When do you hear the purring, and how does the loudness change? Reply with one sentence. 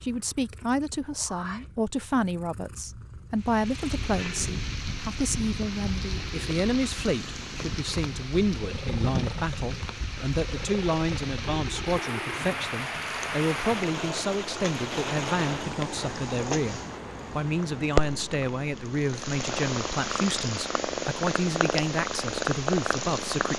The purring can be heard from 0.0 to 23.5 s, getting louder.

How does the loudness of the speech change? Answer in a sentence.
The volume of the speech stays about the same.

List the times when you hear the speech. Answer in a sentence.
The speech can be heard from 0.0 to 23.5 s.